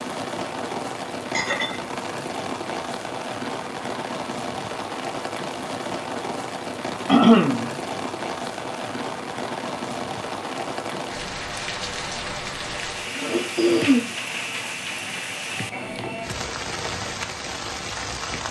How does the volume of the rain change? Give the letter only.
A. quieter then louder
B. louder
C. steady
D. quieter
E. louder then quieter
C.